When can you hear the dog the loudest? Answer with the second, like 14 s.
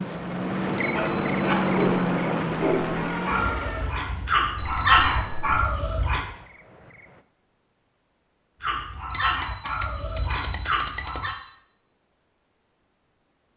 5 s.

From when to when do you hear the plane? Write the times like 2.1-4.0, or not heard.
0.0-4.0.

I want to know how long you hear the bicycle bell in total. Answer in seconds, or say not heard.
5 s.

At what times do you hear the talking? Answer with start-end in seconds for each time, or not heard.
not heard.